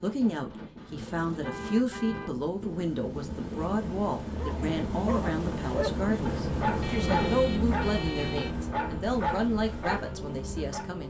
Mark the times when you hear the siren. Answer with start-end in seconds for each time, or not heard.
not heard.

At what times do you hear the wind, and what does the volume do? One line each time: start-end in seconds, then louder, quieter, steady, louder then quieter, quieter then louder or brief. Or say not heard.
0.0-7.5 louder.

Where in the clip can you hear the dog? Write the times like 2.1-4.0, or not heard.
4.3-10.8.